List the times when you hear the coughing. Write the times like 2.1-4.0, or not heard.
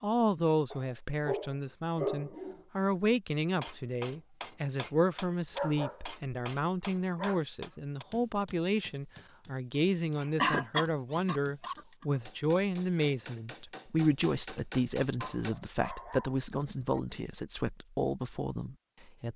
10.4-11.8.